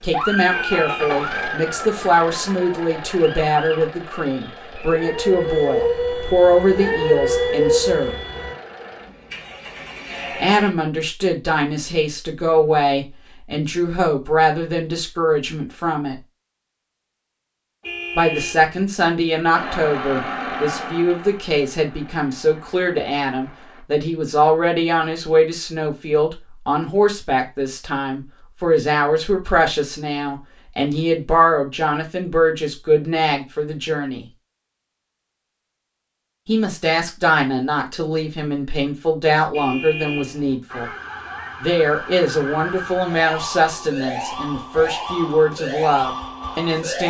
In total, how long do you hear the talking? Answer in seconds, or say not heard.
40 s.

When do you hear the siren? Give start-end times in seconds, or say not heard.
0.1-8.6, 40.6-47.0.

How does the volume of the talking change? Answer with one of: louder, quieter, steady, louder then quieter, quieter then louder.
steady.